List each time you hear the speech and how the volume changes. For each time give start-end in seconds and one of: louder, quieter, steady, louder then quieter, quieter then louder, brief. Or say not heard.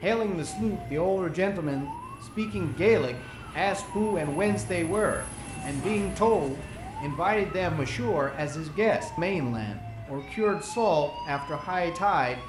0.0-12.4 steady.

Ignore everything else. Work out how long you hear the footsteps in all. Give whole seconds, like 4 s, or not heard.
not heard.